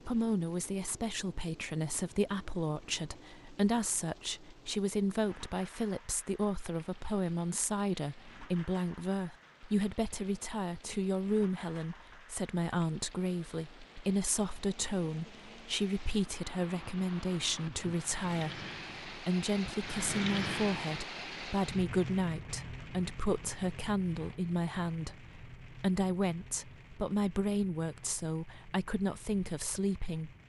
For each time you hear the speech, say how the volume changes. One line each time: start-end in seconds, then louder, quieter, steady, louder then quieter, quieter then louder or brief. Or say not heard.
0.1-30.3 steady.